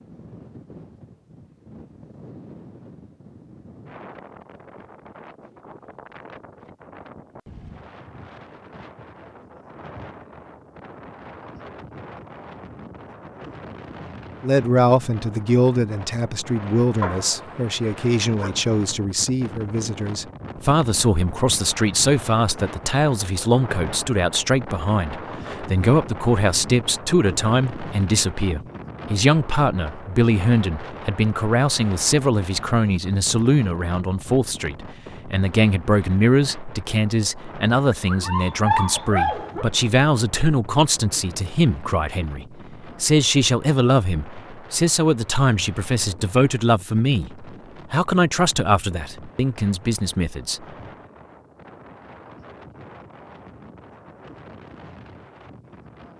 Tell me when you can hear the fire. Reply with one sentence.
The fire can't be heard in this clip.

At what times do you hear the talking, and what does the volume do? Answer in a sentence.
The talking can be heard from 14.4 to 50.6 s, at a steady volume.